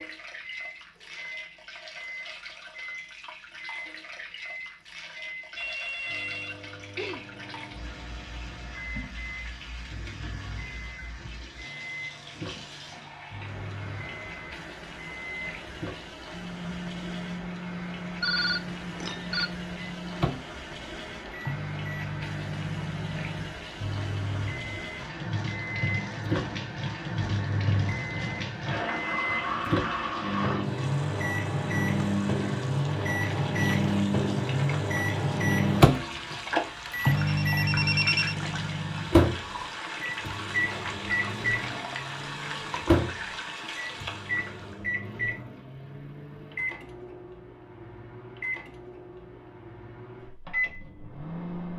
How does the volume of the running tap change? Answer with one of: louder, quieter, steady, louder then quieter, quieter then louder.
louder.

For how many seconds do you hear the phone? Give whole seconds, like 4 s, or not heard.
4 s.